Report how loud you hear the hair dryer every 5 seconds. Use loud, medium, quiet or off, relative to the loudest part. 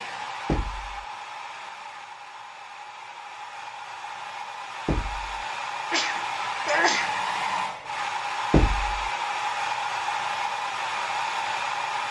medium, loud, loud.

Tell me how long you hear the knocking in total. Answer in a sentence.
The knocking can be heard for 2 seconds in total.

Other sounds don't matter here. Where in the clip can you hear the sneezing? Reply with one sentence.
You can hear the sneezing from 5.9 to 7.2 s.